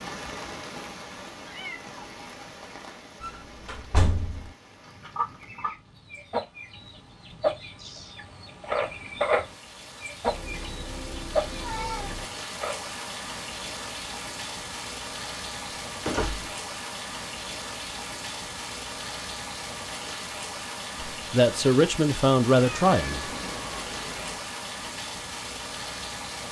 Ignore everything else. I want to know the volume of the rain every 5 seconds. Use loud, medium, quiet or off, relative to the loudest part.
medium, quiet, loud, loud, loud, loud.